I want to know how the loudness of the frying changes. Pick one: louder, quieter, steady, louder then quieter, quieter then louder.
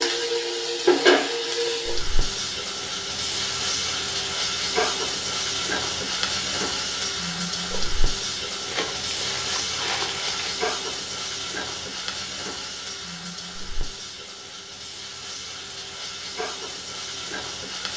quieter.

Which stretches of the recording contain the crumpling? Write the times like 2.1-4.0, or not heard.
8.7-10.6.